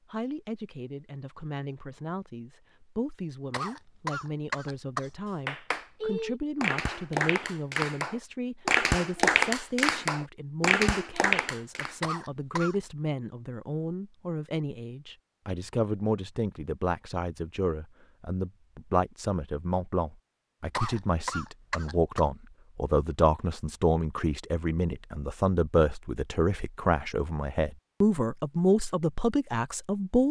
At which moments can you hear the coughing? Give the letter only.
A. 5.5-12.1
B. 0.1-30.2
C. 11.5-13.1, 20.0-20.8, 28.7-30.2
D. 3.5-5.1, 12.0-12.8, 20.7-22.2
D.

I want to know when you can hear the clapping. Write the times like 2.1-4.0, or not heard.
5.5-12.1.